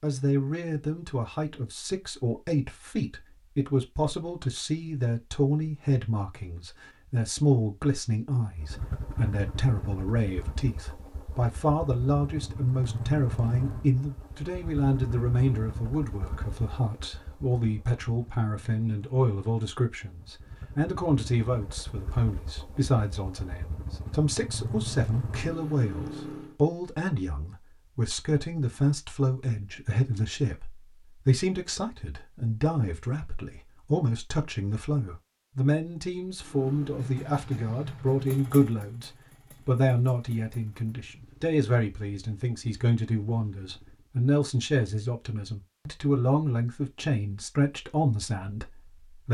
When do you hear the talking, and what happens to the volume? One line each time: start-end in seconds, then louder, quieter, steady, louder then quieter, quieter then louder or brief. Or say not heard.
0.0-49.2 steady.